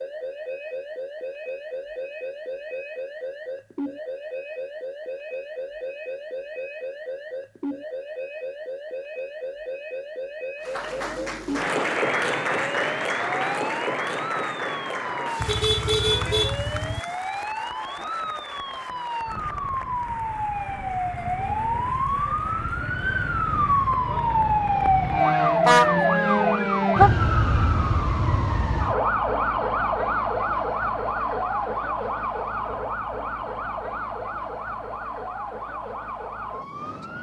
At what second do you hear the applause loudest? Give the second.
12 s.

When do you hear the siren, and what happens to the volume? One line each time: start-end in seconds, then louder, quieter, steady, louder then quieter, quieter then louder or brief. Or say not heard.
0.0-37.1 louder then quieter.